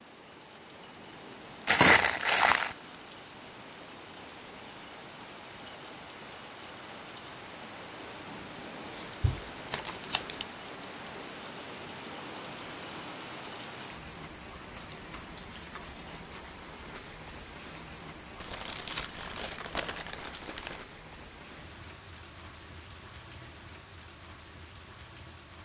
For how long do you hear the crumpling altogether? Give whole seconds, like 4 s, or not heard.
5 s.